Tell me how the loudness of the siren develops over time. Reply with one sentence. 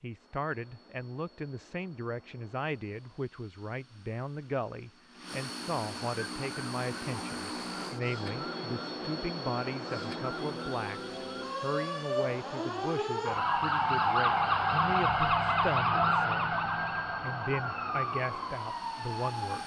The loudness of the siren goes up, then down.